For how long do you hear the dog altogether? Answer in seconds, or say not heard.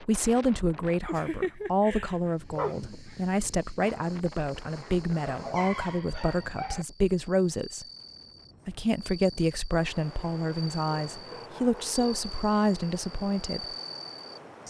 5 s.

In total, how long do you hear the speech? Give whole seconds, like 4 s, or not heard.
13 s.